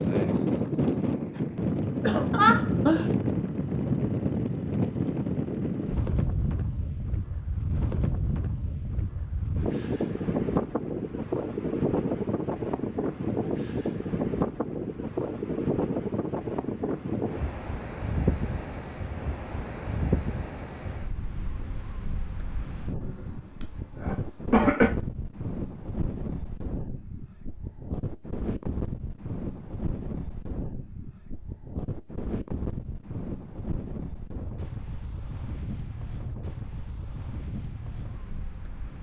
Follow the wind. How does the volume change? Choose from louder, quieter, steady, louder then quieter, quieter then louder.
quieter.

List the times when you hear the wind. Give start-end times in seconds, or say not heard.
0.0-38.9.